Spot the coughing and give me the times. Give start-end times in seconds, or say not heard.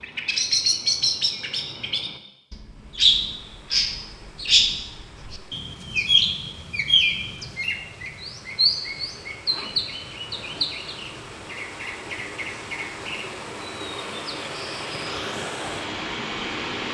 not heard.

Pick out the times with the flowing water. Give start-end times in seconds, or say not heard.
2.6-16.8.